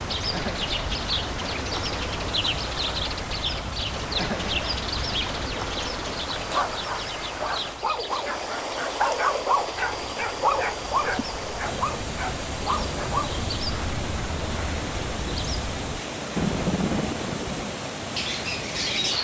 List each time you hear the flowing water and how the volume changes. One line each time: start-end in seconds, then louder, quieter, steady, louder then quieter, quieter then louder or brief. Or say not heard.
0.0-19.1 steady.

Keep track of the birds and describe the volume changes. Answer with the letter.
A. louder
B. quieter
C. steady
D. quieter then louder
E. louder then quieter
D.